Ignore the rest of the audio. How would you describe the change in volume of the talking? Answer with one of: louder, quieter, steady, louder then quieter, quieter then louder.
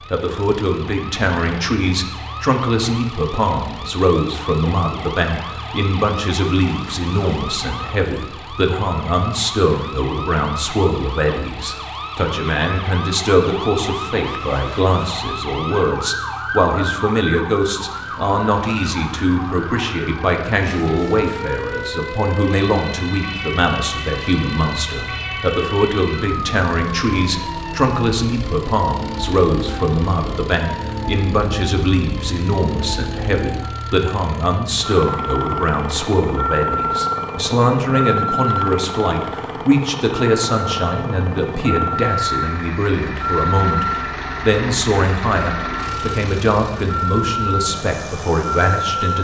steady.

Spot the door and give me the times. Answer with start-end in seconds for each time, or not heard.
not heard.